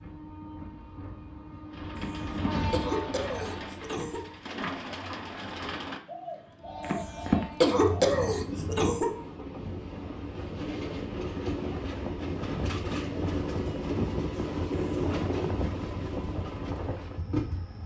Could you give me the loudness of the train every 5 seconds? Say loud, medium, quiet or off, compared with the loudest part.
medium, medium, loud, loud.